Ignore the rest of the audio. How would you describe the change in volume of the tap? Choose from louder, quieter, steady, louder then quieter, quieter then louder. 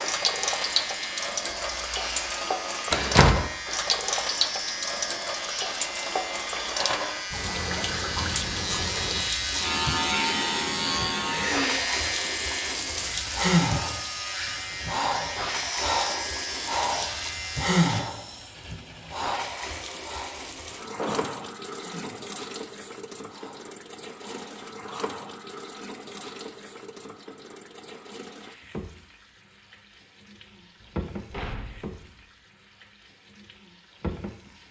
quieter.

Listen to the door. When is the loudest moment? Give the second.
3 s.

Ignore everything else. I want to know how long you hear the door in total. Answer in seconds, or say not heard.
3 s.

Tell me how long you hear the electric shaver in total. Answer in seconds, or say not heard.
18 s.